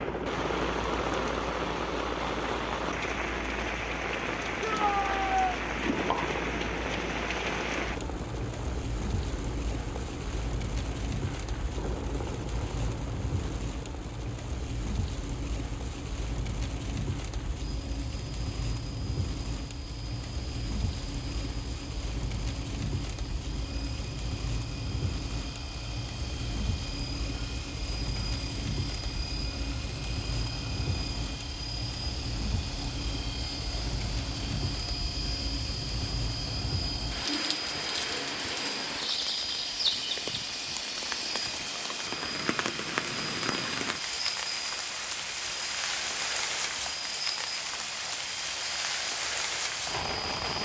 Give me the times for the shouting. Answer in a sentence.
You can hear the shouting from 4.6 to 5.5 s.